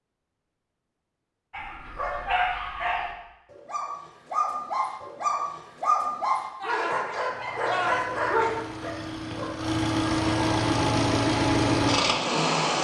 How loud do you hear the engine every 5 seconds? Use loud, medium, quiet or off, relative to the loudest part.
off, medium, loud.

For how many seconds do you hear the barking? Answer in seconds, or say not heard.
8 s.